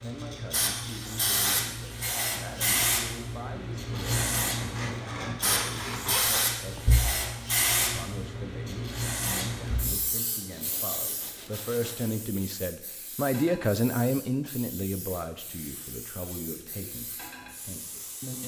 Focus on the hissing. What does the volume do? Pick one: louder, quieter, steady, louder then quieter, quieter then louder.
quieter.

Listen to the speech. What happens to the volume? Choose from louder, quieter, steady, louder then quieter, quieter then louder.
louder then quieter.